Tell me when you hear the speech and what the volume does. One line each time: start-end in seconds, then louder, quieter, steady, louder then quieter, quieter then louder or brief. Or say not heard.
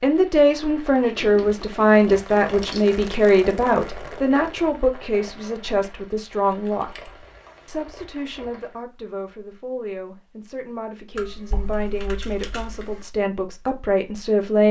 0.0-14.6 quieter then louder.